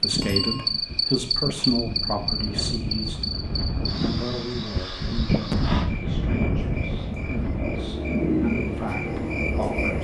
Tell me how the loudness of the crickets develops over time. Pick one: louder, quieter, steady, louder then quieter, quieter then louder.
quieter then louder.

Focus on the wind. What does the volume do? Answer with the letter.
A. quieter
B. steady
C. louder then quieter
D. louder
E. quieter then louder
C.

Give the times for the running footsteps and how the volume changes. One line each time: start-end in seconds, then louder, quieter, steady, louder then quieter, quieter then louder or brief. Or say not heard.
not heard.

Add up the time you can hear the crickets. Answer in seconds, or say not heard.
10 s.